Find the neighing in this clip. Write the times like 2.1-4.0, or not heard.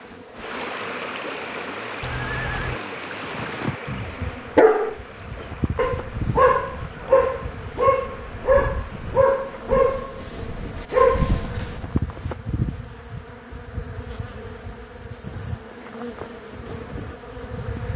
2.0-2.8.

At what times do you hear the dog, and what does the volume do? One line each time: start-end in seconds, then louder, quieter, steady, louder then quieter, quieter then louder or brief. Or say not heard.
2.9-11.9 steady.